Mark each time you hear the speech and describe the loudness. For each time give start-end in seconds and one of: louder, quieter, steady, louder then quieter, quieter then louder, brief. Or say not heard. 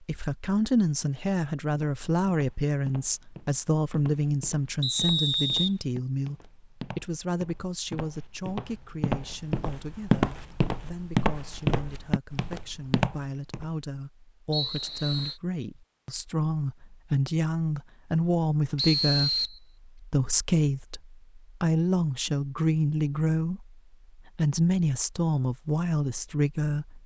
0.0-27.0 quieter then louder.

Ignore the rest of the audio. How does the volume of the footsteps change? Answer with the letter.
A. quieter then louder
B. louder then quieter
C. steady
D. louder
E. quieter
D.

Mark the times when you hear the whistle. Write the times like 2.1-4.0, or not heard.
4.8-5.7, 14.5-15.3, 18.8-19.6.